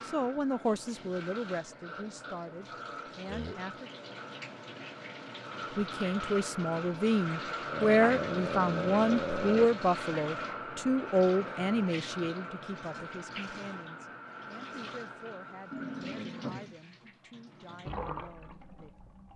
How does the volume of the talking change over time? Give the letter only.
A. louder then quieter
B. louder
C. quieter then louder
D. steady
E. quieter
A.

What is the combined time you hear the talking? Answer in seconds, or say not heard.
17 s.